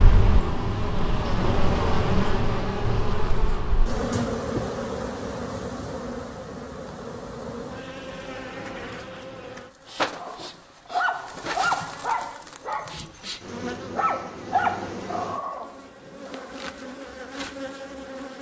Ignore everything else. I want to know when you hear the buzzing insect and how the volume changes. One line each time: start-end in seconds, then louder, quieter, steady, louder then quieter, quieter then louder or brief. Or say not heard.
0.0-18.3 quieter.